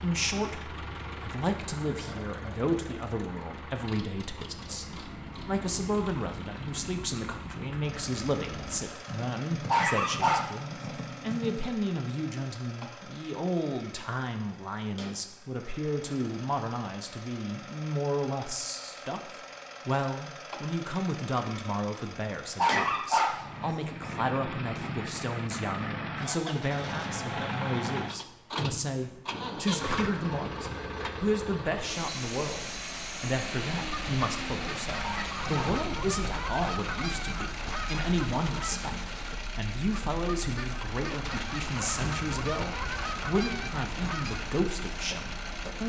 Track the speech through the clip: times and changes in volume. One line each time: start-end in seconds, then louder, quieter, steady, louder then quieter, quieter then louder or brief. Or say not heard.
0.0-45.8 steady.